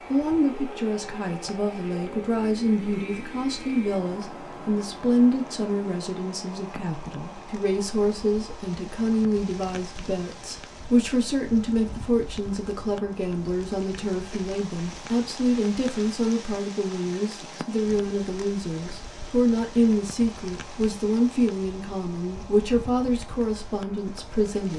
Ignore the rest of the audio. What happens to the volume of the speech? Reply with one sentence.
The volume of the speech stays about the same.